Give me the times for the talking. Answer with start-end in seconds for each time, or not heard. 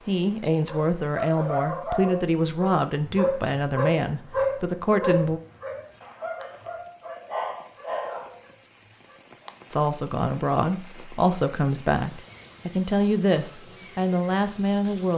0.1-5.4, 9.7-15.1.